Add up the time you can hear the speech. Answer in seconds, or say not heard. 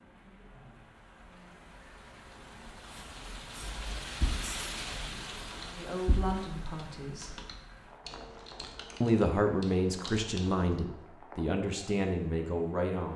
6 s.